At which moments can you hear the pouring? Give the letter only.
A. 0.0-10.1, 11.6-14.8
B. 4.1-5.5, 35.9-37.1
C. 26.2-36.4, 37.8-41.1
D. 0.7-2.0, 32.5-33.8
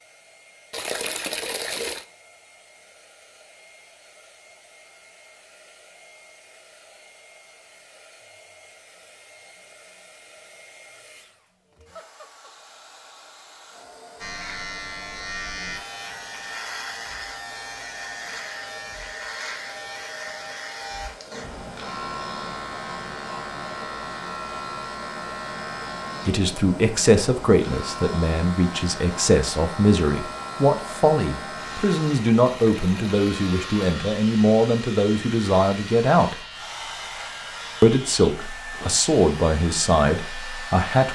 D.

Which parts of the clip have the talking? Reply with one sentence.
You can hear the talking from 26.2 to 36.4 s and from 37.8 to 41.1 s.